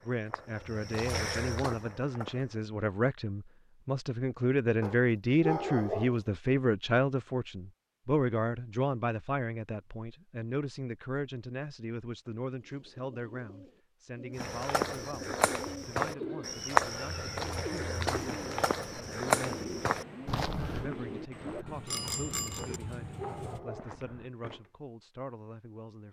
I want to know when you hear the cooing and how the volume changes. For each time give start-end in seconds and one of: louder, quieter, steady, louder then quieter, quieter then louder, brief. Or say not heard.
12.5-23.6 louder.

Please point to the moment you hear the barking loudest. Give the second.
6 s.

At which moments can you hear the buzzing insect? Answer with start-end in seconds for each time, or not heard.
not heard.